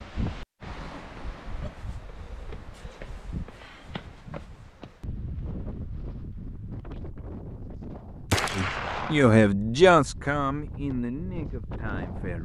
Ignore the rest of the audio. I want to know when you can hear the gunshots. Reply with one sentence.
You can hear the gunshots from 8.3 to 9.3 s.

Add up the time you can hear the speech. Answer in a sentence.
You can hear the speech for 4 seconds altogether.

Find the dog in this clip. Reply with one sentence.
You can't hear the dog here.